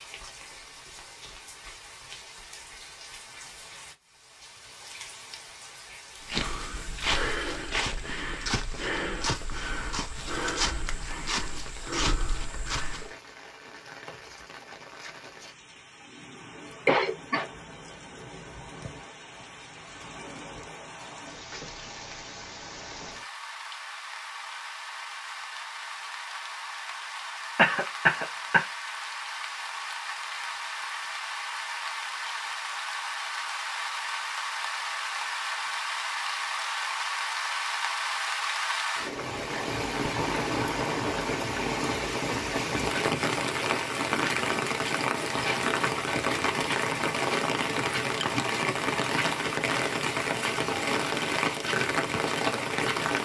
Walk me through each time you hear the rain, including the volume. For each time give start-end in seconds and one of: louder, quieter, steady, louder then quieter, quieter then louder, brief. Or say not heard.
0.0-53.2 louder.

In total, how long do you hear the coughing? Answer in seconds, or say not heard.
2 s.